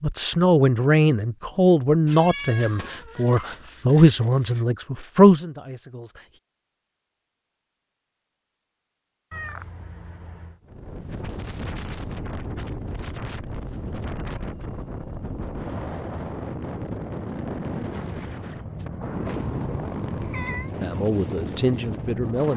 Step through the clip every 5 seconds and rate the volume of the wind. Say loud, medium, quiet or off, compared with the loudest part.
off, off, loud, loud, loud.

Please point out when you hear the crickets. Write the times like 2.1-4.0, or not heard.
not heard.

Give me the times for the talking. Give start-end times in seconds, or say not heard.
0.0-6.2, 20.8-22.5.